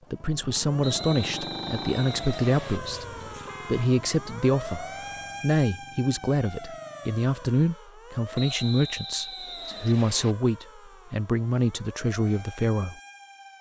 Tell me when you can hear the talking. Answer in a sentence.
The talking can be heard from 0.1 to 3.0 s and from 3.6 to 12.9 s.